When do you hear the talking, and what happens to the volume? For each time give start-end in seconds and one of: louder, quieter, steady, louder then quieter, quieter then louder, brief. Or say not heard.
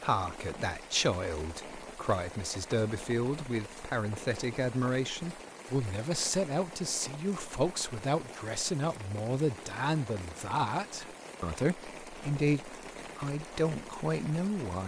0.0-14.8 steady.